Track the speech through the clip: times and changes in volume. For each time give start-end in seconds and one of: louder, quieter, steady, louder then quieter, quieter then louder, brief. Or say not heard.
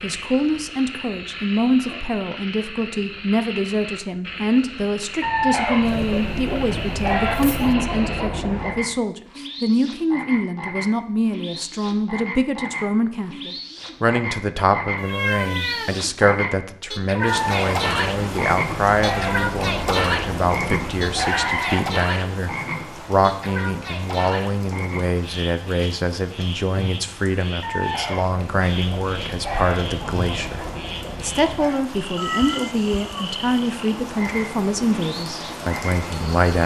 0.0-36.6 steady.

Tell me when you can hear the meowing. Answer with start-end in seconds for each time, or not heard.
5.8-7.8, 14.9-16.0, 32.1-33.3.